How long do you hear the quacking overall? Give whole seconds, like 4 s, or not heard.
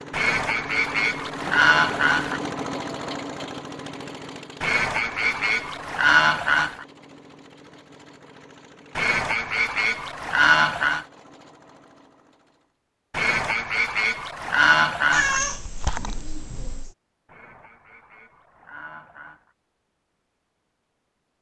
11 s.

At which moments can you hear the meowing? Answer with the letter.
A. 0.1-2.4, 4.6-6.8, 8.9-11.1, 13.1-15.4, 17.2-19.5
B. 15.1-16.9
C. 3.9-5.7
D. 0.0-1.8
B.